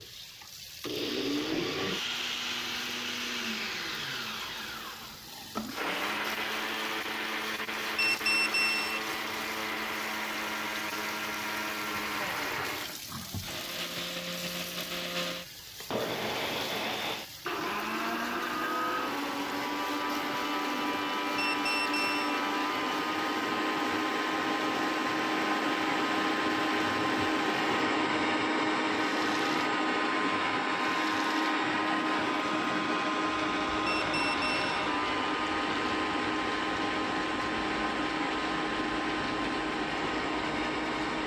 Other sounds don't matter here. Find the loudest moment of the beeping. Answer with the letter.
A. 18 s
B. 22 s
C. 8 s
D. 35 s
C.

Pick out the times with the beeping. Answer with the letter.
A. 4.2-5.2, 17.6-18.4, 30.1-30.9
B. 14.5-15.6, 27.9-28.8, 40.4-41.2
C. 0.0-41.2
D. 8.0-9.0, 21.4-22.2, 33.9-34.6
D.